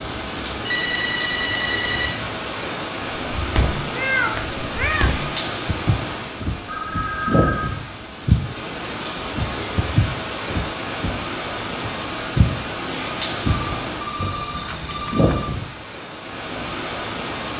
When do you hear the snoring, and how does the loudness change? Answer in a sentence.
You can't hear the snoring here.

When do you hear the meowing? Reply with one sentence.
The meowing can be heard from 3.9 to 5.1 s.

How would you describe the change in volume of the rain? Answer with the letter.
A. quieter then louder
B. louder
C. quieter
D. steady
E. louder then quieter
D.